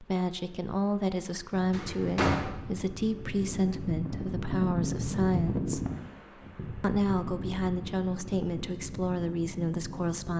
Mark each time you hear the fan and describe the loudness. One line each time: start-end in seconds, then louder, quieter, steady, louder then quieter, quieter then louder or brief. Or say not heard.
0.0-10.3 louder then quieter.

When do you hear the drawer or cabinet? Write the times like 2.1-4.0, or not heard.
1.7-2.5.